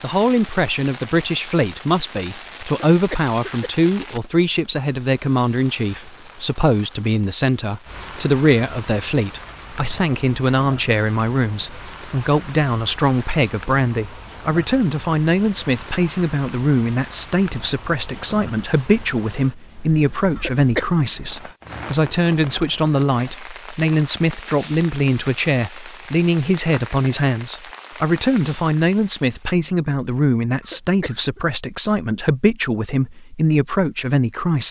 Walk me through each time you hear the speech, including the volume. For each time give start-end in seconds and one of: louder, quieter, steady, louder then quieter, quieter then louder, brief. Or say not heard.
0.0-34.6 steady.